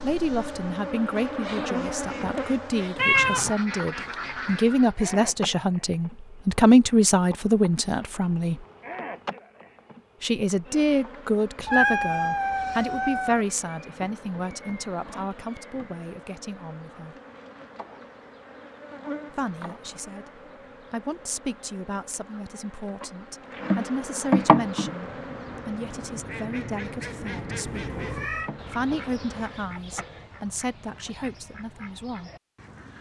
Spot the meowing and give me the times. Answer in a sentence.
The meowing can be heard from 3.0 to 3.5 s, from 11.7 to 13.4 s and from 27.6 to 28.5 s.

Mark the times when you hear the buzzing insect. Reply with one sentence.
The buzzing insect can be heard from 0.0 to 29.6 s.